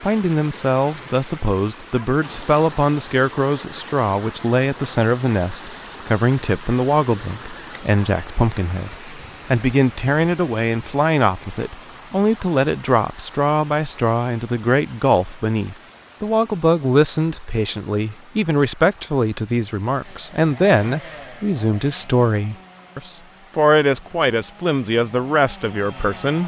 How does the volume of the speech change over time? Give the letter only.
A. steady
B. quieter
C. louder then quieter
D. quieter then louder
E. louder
A.